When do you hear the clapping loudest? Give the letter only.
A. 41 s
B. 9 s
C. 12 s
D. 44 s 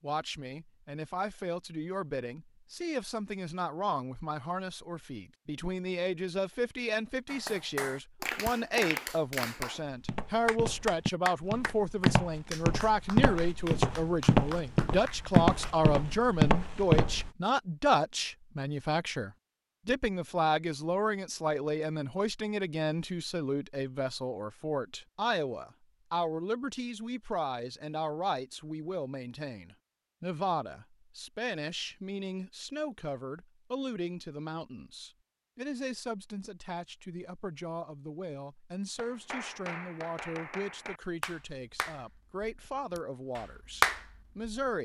D.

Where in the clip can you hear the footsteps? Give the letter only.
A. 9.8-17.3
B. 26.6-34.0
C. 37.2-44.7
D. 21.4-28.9
A.